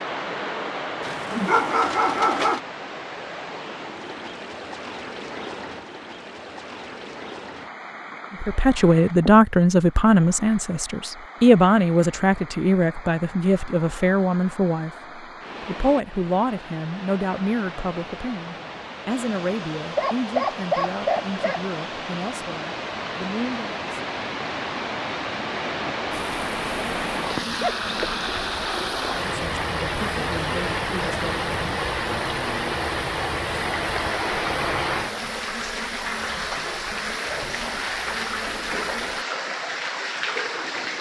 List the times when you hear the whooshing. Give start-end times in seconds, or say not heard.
1.2-1.6.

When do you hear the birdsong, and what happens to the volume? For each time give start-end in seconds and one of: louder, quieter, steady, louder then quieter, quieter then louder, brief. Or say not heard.
not heard.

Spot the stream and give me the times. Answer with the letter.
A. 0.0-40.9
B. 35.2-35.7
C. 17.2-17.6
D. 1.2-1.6
A.